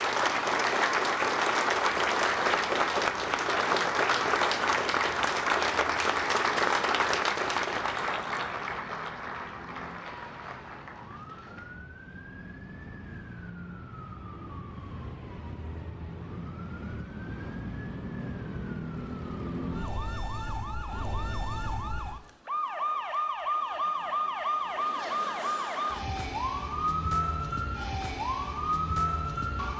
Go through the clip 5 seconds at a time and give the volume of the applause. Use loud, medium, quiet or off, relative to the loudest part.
loud, loud, quiet, off, off, off.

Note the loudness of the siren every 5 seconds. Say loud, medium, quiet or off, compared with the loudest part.
quiet, quiet, quiet, medium, loud, loud.